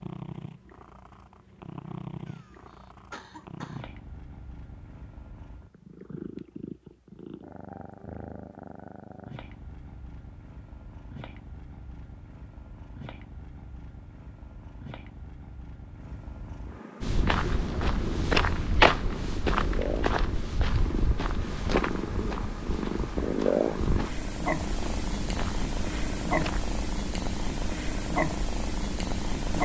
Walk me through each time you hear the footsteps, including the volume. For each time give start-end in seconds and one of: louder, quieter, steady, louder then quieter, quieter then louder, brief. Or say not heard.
17.0-26.8 quieter.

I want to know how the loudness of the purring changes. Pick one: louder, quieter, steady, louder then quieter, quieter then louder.
louder.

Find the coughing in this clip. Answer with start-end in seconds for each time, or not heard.
2.2-3.9.